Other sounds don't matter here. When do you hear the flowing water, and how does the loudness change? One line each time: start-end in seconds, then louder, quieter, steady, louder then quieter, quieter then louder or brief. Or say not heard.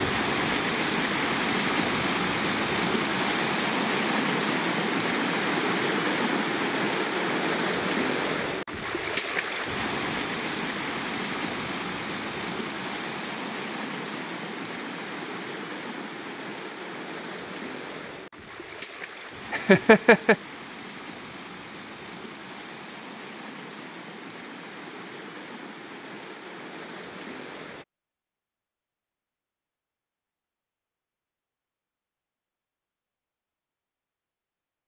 0.0-27.9 quieter.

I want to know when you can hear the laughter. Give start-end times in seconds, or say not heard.
19.5-20.4.